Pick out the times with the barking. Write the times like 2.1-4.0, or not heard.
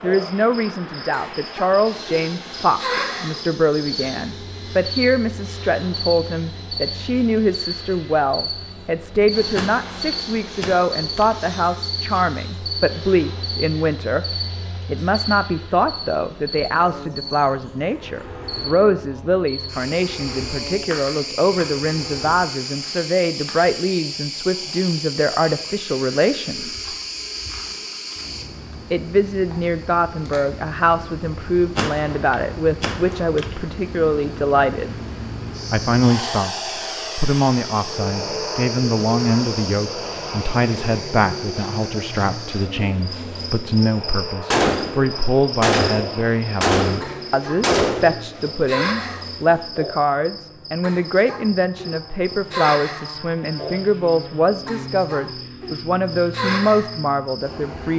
not heard.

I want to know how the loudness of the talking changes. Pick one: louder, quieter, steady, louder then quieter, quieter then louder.
steady.